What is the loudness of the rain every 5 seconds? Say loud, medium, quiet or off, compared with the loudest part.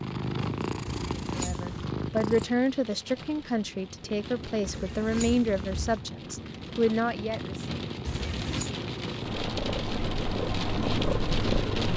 quiet, medium, loud.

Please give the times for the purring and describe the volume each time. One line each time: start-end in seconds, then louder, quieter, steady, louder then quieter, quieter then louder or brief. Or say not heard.
0.0-2.5 brief
4.0-11.9 louder.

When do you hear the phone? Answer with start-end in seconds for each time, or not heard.
0.8-1.9, 4.7-6.0, 8.1-8.8.